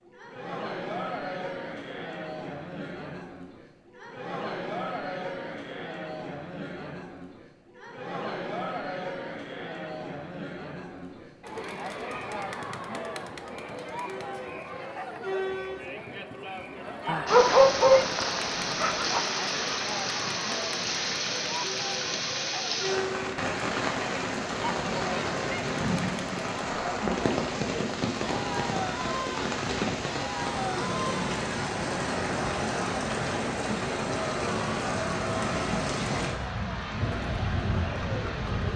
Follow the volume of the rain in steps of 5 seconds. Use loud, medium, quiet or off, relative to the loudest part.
off, off, off, loud, loud, loud, loud, loud.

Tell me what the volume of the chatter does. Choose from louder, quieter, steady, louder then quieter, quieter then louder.
steady.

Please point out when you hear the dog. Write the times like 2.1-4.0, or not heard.
17.1-19.2.